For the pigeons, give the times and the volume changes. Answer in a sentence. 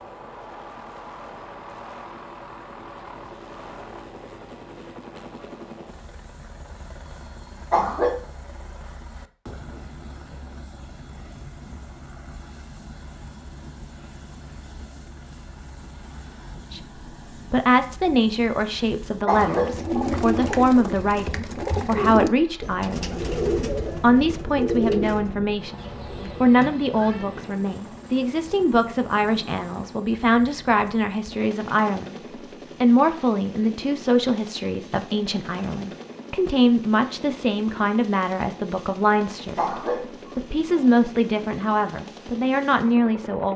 You can hear the pigeons from 19.3 to 27.2 s, getting quieter.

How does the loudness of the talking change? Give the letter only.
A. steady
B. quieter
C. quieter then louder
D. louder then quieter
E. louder
A.